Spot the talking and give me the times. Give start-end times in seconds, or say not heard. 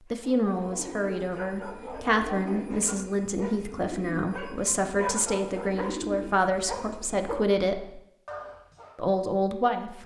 0.1-8.0, 8.9-10.0.